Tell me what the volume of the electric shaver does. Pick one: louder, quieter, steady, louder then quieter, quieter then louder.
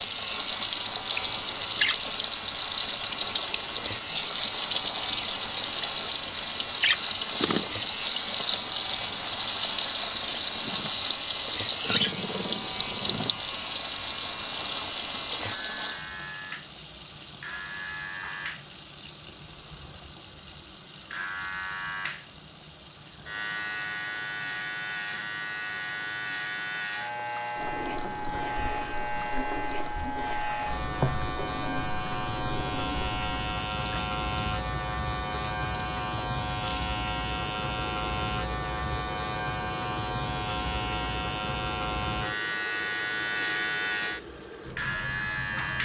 louder.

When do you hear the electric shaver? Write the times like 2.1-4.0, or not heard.
0.0-45.8.